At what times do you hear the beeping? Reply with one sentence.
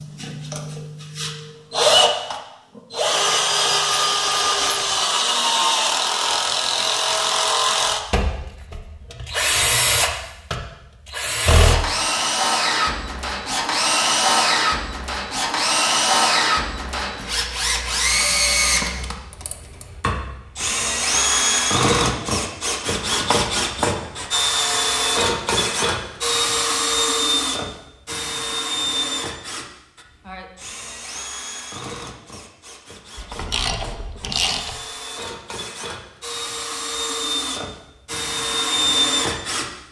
You can't hear the beeping here.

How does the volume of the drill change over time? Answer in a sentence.
The loudness of the drill goes down.